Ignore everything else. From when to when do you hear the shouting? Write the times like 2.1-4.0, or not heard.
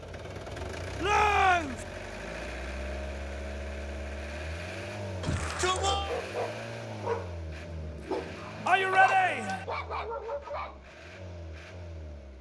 1.0-1.9, 5.2-6.2, 8.7-9.7.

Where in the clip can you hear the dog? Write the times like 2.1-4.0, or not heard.
5.8-10.9.